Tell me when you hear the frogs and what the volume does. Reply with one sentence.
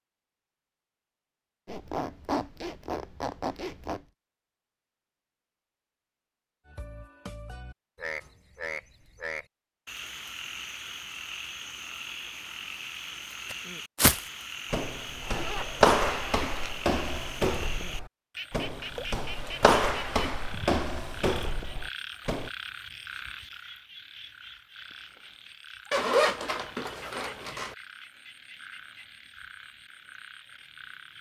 You can hear the frogs from 6.7 to 31.1 s, getting quieter.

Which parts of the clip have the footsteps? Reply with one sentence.
You can hear the footsteps from 13.5 to 22.5 s.